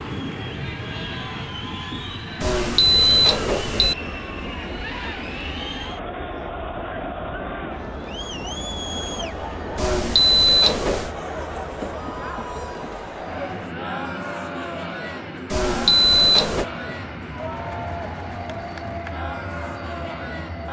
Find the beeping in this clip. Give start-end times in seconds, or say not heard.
2.4-4.0, 9.8-11.2, 15.5-16.6.